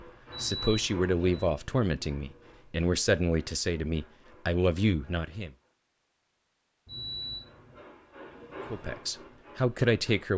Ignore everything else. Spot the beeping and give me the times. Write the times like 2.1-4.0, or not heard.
0.3-1.6, 6.8-7.5.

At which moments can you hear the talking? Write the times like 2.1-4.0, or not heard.
0.3-5.5, 8.7-10.3.